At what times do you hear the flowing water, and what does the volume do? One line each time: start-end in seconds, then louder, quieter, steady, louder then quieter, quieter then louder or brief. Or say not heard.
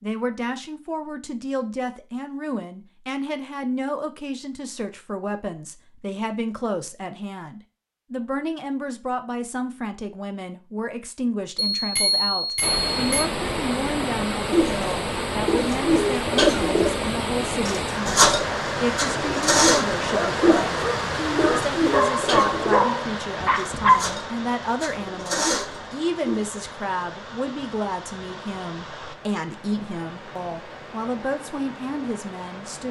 12.6-32.8 quieter.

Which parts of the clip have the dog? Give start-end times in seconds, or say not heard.
20.1-24.1.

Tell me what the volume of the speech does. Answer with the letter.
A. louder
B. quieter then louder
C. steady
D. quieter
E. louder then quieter
C.